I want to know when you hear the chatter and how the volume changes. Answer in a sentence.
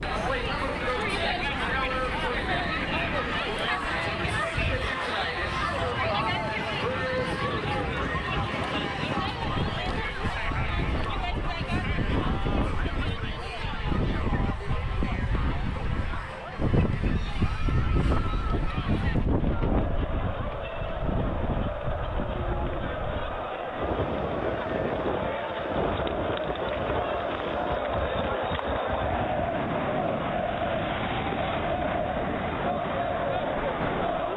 You can hear the chatter from 0.0 to 34.3 s, getting quieter then louder.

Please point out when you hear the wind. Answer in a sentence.
The wind can be heard from 0.0 to 34.3 s.